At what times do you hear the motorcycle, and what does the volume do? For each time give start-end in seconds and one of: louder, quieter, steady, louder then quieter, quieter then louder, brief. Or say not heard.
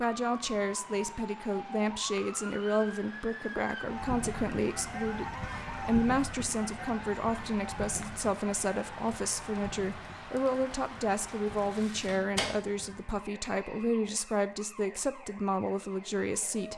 not heard.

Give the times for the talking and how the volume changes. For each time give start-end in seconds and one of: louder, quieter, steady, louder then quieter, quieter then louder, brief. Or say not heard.
0.0-16.7 steady.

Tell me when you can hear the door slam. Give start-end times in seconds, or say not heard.
12.0-12.8.